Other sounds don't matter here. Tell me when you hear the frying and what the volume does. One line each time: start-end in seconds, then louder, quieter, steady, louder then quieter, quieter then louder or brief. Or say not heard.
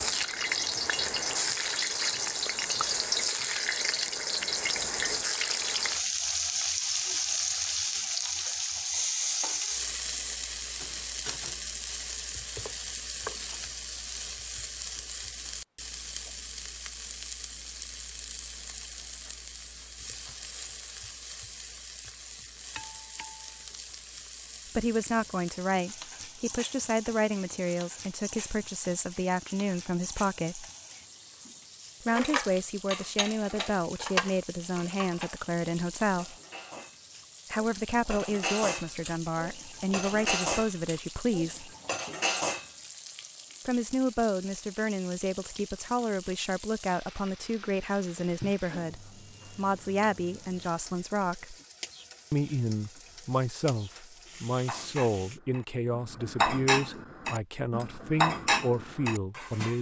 0.0-55.4 quieter.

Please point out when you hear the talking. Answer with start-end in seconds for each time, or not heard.
24.8-30.6, 32.0-36.4, 37.5-41.7, 43.6-51.5, 52.3-59.7.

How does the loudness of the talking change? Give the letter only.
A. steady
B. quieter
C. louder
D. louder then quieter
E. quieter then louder
A.